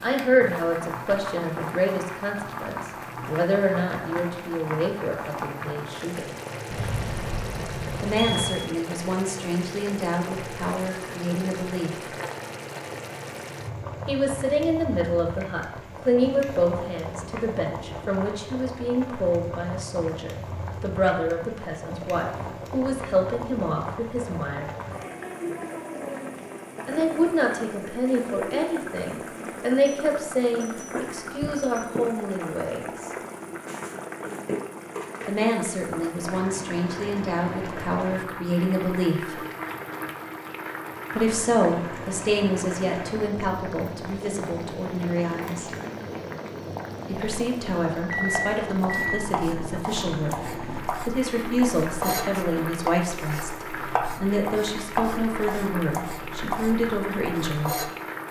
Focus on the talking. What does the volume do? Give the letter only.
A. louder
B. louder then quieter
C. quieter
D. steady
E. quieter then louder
D.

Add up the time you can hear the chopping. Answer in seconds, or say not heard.
9 s.